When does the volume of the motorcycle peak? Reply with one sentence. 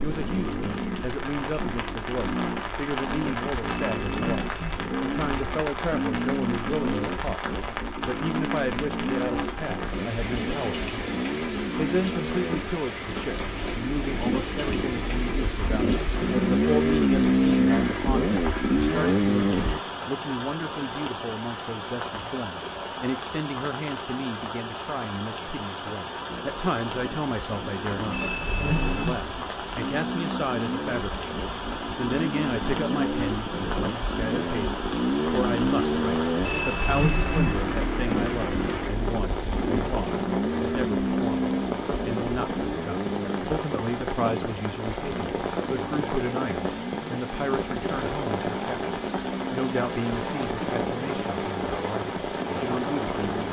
The volume of the motorcycle peaks at 17 seconds.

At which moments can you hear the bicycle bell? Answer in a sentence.
The bicycle bell can be heard from 3.6 to 4.8 s, from 28.1 to 29.1 s and from 36.4 to 37.5 s.